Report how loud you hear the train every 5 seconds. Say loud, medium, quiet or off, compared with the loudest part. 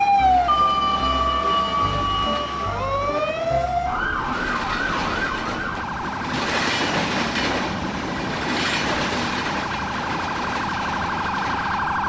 medium, loud, medium.